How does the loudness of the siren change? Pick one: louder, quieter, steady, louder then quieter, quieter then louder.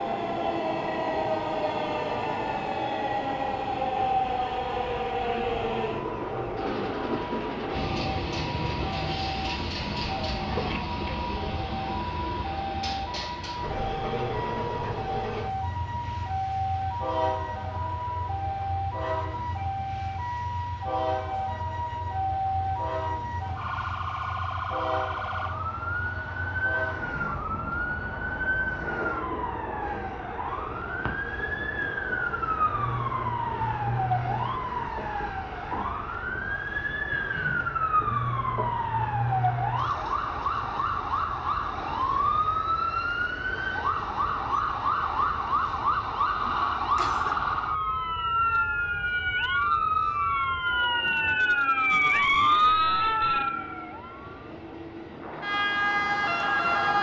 louder.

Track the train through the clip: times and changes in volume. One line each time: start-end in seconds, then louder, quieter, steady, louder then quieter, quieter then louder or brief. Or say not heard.
0.0-56.9 quieter.